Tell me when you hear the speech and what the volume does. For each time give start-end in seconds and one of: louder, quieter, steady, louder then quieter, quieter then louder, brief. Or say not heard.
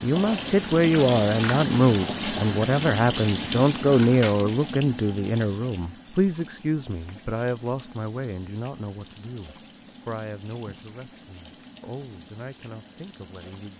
0.0-13.7 quieter.